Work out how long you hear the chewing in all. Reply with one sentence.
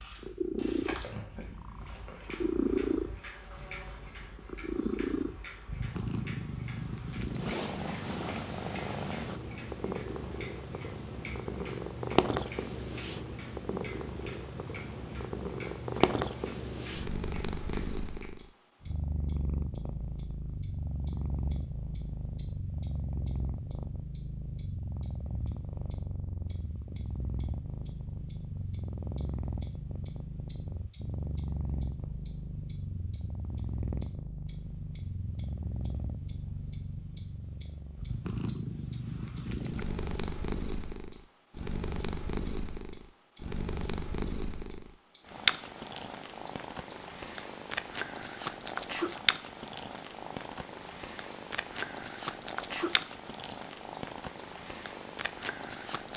You can hear the chewing for 2 seconds altogether.